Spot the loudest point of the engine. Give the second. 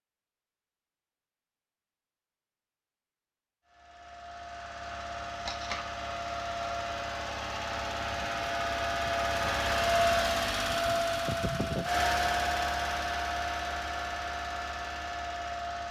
10 s.